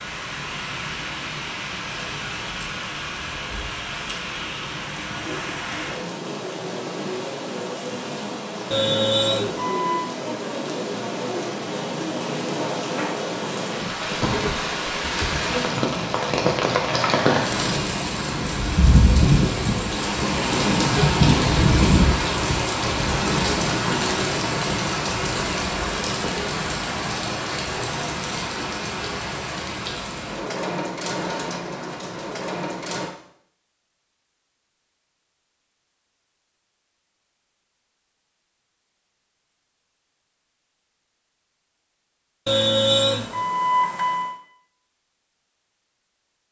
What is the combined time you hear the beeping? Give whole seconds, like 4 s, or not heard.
3 s.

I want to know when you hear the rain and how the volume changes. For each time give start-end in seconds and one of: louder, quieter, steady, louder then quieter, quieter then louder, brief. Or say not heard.
0.0-33.1 louder then quieter.